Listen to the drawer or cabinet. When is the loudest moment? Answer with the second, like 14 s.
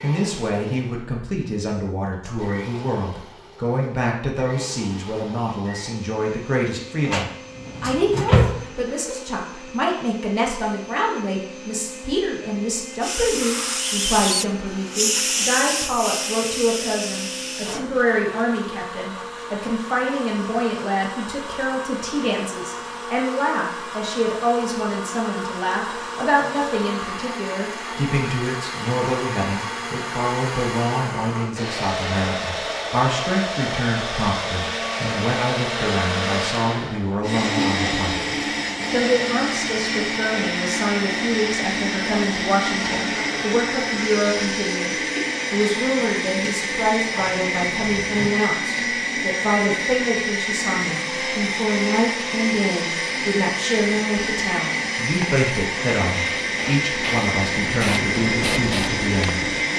8 s.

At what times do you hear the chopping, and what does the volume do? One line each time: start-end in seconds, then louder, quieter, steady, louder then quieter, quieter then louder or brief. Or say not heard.
not heard.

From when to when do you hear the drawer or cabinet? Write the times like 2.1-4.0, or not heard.
7.0-8.6, 47.0-48.3.